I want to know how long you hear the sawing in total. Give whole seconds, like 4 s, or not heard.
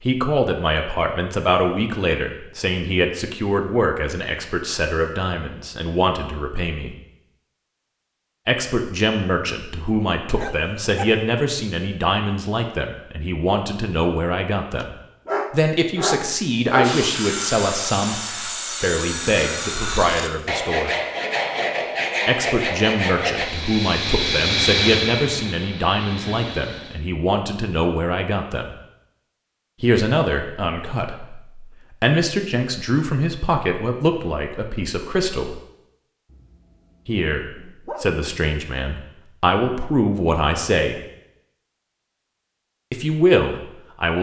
7 s.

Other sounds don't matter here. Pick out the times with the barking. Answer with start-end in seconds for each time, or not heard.
10.3-11.1, 14.8-17.0, 36.3-38.2.